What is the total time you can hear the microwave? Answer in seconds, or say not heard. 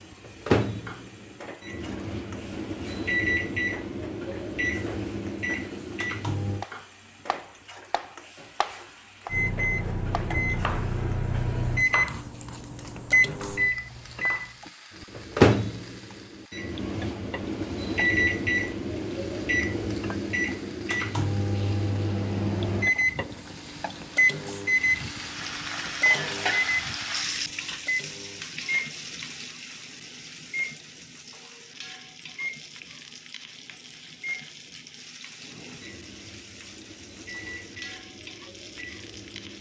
37 s.